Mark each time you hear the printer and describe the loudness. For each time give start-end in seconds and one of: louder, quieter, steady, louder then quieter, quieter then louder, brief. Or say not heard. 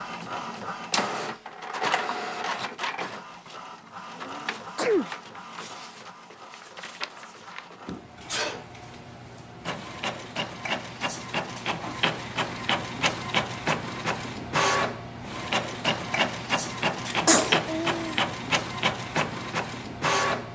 0.0-20.4 quieter then louder.